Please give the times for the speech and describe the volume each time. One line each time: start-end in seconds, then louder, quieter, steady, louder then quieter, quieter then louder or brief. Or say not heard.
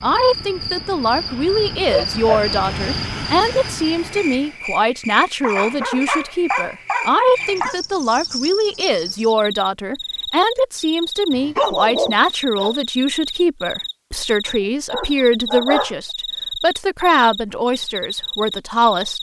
0.0-19.1 steady.